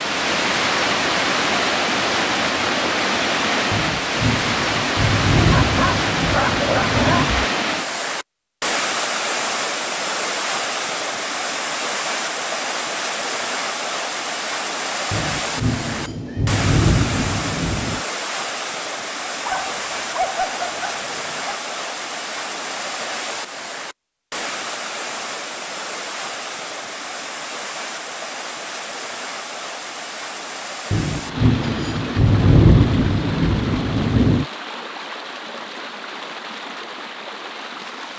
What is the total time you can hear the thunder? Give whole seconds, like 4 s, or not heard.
10 s.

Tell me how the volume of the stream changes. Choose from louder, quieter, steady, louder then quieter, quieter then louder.
quieter.